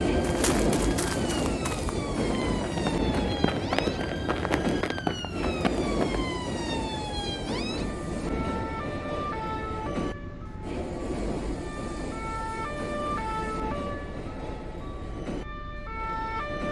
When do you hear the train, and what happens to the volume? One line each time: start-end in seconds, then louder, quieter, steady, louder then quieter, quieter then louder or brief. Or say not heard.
0.0-16.6 quieter.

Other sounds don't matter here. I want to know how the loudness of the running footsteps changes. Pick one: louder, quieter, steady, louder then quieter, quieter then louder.
louder.